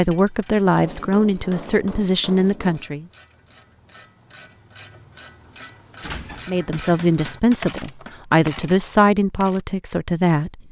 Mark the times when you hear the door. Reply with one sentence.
You can hear the door from 6.0 to 6.5 s.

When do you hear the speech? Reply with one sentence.
You can hear the speech from 0.0 to 3.0 s and from 6.5 to 10.6 s.